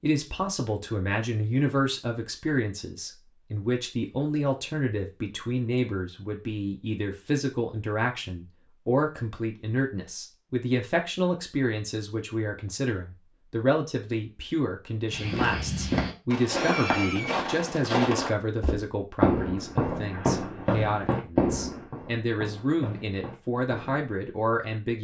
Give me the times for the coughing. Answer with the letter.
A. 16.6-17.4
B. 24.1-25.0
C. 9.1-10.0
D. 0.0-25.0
A.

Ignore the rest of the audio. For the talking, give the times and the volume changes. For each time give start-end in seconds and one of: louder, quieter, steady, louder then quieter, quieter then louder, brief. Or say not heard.
0.0-25.0 steady.